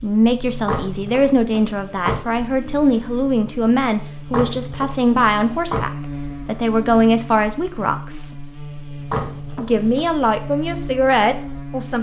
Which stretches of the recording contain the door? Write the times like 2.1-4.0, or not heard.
0.6-2.2, 4.2-5.8, 9.0-10.1.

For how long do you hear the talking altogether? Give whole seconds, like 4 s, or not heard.
11 s.